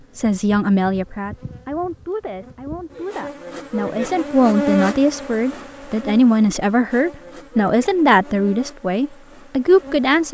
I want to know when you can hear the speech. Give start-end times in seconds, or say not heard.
0.1-10.3.